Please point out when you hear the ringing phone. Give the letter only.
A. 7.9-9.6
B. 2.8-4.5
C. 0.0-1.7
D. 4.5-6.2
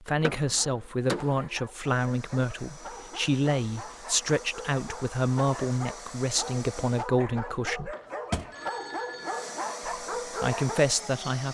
A.